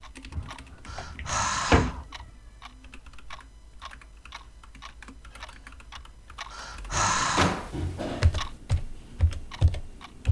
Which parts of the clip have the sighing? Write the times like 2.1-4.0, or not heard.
0.8-2.0, 6.5-7.7.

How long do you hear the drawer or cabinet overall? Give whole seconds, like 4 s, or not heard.
3 s.